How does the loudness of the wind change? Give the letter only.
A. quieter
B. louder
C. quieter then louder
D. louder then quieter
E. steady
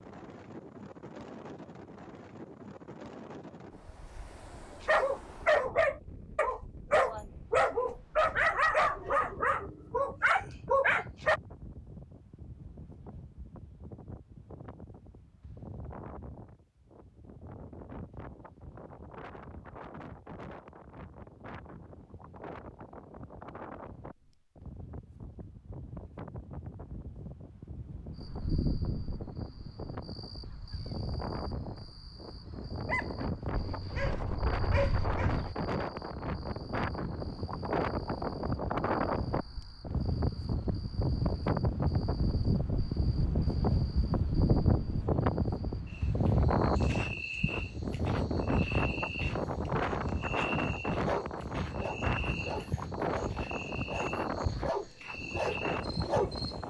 B.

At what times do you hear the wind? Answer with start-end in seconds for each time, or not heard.
0.0-56.6.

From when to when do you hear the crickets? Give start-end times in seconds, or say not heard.
28.1-56.6.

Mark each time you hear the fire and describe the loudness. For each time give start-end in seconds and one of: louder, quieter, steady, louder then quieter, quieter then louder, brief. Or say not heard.
not heard.